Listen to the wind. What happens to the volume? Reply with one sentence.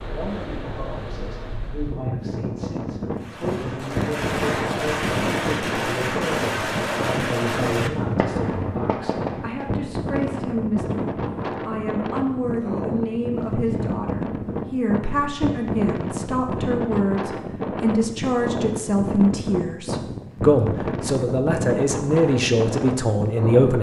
The volume of the wind stays about the same.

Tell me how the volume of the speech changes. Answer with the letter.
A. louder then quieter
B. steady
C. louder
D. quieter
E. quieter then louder
C.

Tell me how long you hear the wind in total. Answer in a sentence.
You can hear the wind for 24 seconds altogether.